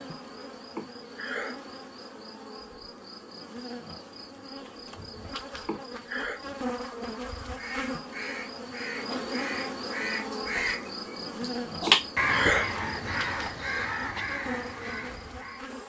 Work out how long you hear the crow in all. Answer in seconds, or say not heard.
8 s.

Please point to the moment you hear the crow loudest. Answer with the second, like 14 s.
12 s.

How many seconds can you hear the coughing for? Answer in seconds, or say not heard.
2 s.